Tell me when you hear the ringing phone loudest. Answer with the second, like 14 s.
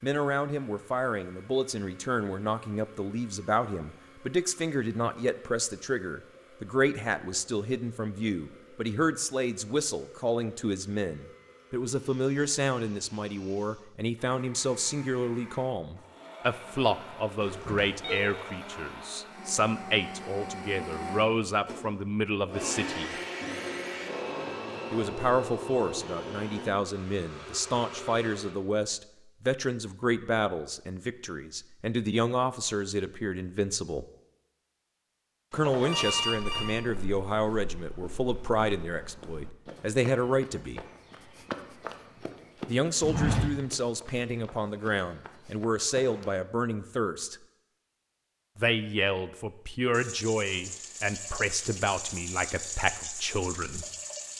36 s.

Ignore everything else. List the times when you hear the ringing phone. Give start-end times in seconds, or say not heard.
17.4-18.2, 35.5-36.8.